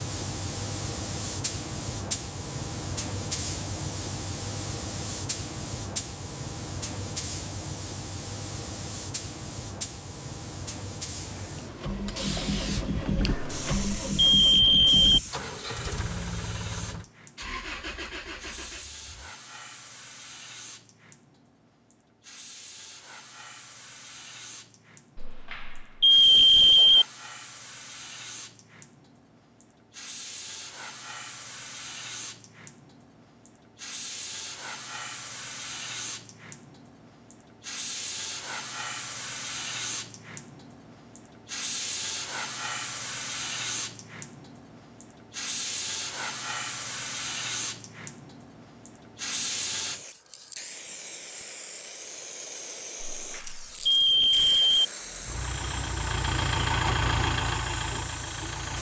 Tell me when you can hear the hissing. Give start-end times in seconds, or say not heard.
0.0-58.7.